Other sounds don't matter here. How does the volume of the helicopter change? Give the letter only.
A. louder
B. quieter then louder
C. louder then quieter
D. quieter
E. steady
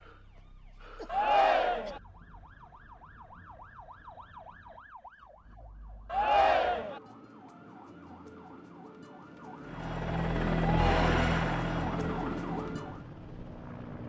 D.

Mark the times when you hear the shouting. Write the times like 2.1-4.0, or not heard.
1.1-2.0, 6.1-7.0, 10.6-11.1.